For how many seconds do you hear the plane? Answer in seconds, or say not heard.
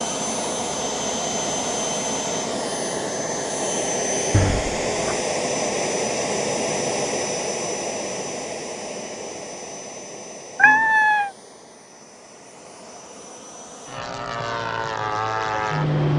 16 s.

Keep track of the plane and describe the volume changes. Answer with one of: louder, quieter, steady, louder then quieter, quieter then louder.
quieter then louder.